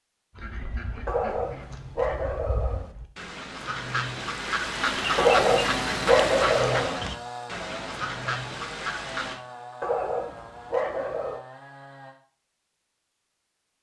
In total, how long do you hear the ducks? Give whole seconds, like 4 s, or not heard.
9 s.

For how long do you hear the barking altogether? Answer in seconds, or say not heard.
5 s.